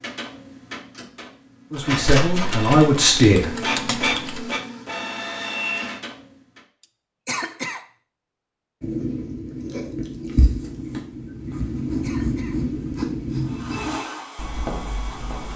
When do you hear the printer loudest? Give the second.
4 s.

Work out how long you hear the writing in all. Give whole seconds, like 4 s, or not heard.
7 s.